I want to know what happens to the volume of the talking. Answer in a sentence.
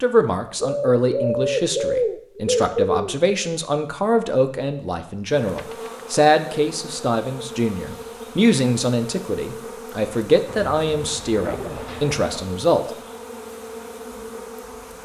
The loudness of the talking stays about the same.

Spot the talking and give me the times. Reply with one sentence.
You can hear the talking from 0.0 to 12.9 s.